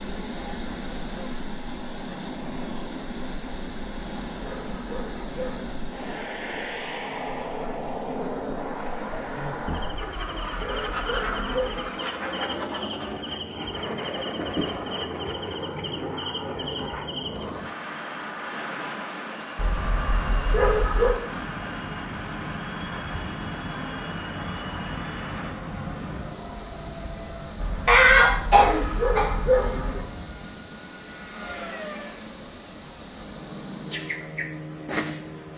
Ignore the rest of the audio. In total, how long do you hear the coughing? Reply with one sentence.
You can hear the coughing for 2 seconds altogether.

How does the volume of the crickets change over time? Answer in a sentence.
The volume of the crickets goes up.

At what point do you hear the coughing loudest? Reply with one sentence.
The volume of the coughing peaks at 28 seconds.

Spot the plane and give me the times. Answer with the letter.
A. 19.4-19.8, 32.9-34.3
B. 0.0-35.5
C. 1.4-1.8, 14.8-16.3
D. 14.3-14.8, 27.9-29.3
B.